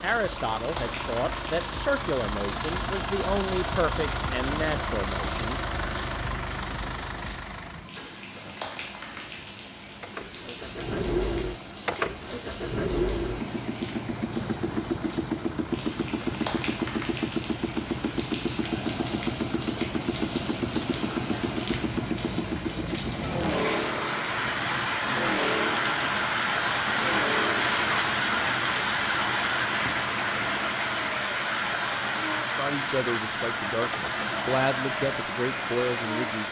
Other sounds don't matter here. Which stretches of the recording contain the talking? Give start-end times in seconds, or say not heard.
0.0-5.6, 32.5-36.4.